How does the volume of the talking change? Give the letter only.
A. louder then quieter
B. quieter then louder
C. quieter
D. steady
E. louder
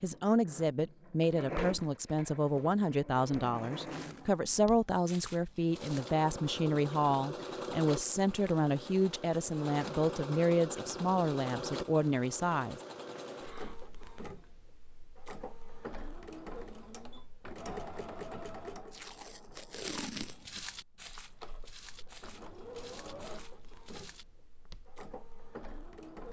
D.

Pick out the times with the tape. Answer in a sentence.
The tape can be heard from 18.9 to 20.6 s.